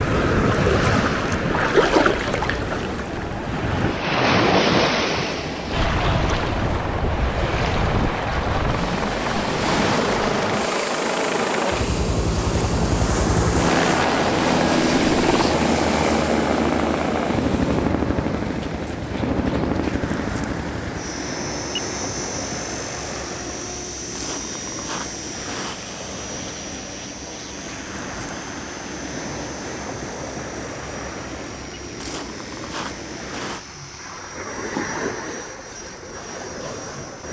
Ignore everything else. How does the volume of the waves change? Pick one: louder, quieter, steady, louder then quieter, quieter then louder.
quieter.